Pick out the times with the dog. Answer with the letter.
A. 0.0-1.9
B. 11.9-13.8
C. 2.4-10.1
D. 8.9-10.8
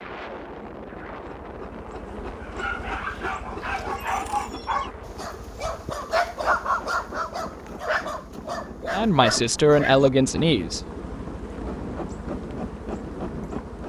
C.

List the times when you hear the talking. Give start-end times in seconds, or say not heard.
8.9-10.8.